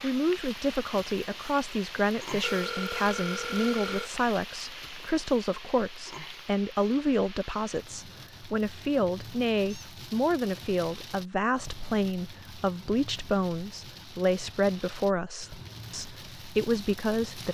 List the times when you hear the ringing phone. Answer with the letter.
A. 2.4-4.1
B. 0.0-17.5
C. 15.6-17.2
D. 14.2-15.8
A.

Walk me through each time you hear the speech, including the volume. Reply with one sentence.
You can hear the speech from 0.0 to 17.5 s, at a steady volume.